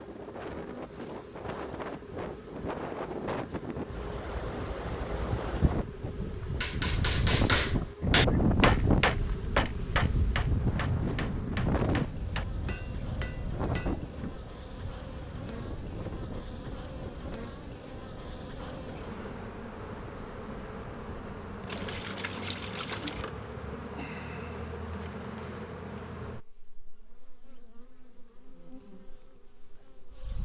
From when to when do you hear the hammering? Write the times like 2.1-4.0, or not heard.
6.6-14.1.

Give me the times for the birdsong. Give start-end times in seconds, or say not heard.
not heard.